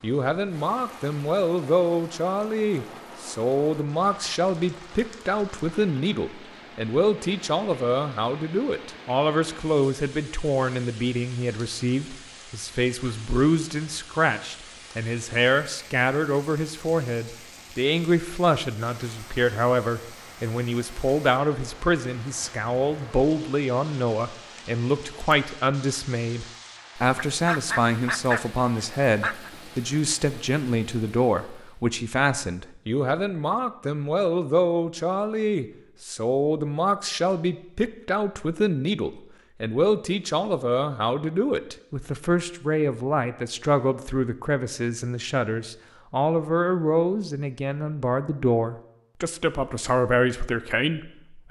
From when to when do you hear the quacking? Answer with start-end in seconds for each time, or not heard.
27.1-29.5.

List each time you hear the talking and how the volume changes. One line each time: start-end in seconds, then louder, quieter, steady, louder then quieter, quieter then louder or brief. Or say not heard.
0.0-51.4 steady.